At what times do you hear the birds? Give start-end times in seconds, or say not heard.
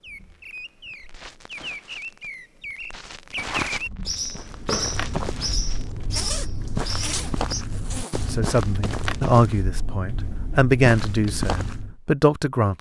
0.0-7.7.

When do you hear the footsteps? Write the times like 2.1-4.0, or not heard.
3.4-11.9.